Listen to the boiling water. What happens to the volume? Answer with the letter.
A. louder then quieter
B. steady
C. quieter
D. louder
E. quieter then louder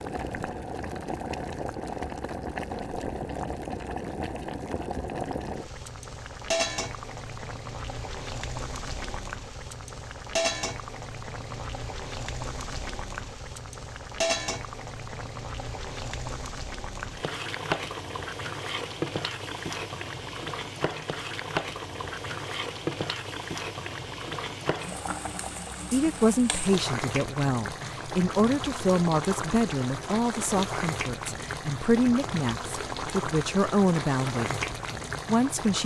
B.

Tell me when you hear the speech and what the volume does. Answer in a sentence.
The speech can be heard from 25.9 to 34.5 s, at a steady volume; and briefly from 35.2 to 35.8 s.